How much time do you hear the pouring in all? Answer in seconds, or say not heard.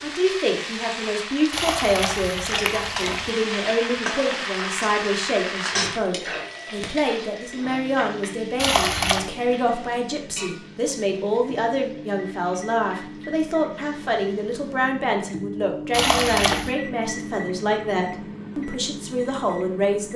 3 s.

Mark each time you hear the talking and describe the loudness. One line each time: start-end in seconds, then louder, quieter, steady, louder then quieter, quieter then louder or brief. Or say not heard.
0.0-20.1 steady.